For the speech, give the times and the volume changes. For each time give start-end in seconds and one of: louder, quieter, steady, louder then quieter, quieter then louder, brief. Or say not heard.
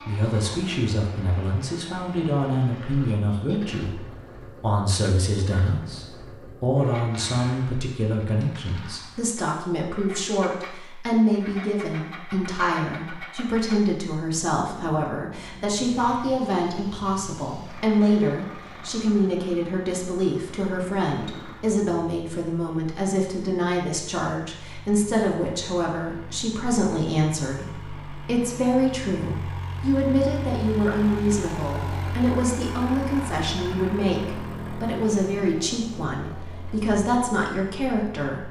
0.0-38.4 steady.